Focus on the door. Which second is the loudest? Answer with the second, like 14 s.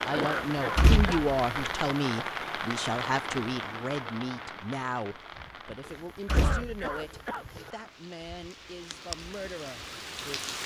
1 s.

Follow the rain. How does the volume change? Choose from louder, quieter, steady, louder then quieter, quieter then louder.
quieter then louder.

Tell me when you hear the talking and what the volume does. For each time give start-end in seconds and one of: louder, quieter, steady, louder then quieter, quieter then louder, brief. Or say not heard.
0.0-10.6 quieter.